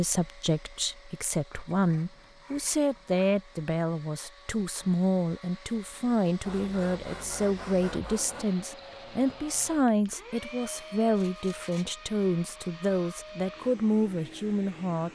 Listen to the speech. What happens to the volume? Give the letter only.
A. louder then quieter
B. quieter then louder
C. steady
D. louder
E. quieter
C.